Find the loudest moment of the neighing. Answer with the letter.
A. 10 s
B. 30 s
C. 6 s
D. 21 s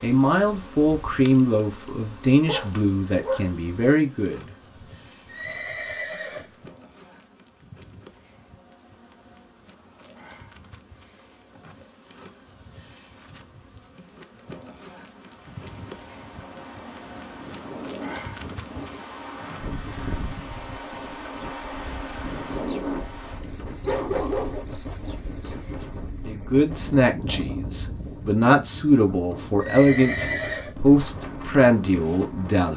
B.